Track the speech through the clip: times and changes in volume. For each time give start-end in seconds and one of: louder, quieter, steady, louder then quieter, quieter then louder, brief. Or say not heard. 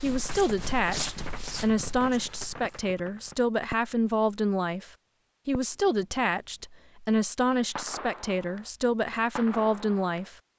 0.0-10.3 steady.